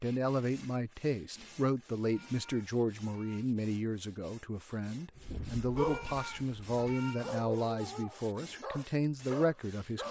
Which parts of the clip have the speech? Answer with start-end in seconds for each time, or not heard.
0.0-10.0.